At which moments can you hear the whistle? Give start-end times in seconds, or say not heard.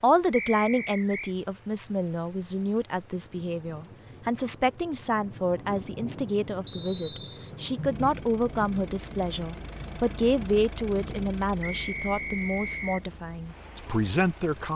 0.3-1.4, 6.7-7.5, 11.6-13.1.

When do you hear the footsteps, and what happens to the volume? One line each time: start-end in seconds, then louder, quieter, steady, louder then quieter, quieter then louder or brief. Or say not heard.
not heard.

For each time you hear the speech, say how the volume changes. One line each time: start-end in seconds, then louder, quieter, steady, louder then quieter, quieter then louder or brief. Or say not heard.
0.0-14.7 steady.